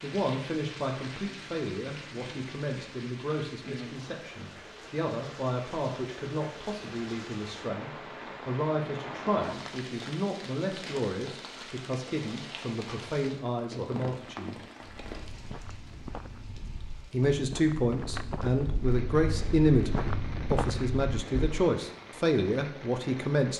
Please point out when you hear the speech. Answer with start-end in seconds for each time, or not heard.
0.0-14.6, 17.1-23.5.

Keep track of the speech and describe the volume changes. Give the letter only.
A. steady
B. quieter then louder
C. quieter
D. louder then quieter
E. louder
E.